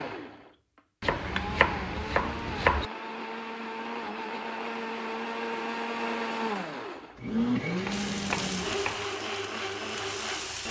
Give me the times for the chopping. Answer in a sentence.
You can hear the chopping from 1.0 to 2.9 s and from 7.8 to 9.1 s.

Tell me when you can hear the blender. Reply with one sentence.
The blender can be heard from 0.0 to 10.6 s.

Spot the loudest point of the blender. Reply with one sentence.
The loudest moment of the blender is at 8 seconds.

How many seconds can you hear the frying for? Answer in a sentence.
You can hear the frying for 3 seconds altogether.